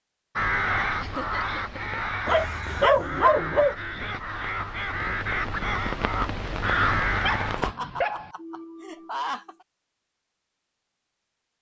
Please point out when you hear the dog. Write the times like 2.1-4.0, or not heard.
2.2-3.8, 7.1-8.3.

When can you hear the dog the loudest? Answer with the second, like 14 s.
3 s.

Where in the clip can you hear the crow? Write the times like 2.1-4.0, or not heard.
0.3-7.8.